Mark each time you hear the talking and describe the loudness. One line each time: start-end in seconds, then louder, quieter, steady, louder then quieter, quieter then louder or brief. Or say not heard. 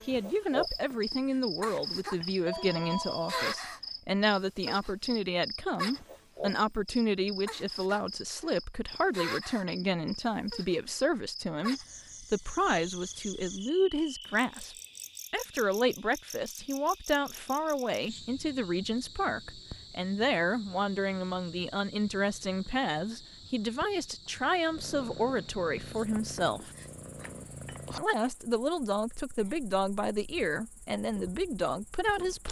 0.1-26.7 steady
27.9-32.4 steady.